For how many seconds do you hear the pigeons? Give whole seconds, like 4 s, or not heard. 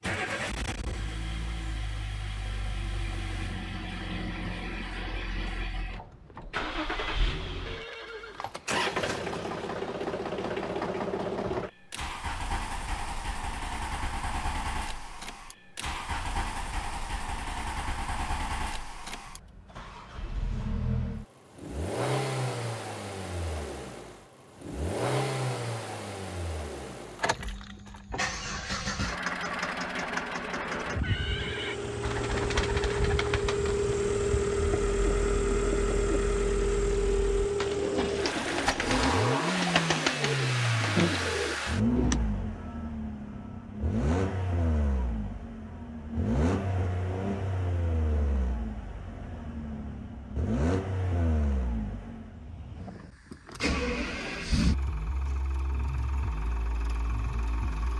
10 s.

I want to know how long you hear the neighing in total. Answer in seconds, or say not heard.
2 s.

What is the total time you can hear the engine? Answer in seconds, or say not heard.
58 s.